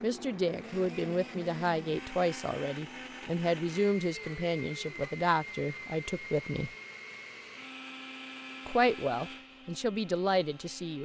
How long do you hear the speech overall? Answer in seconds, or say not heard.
9 s.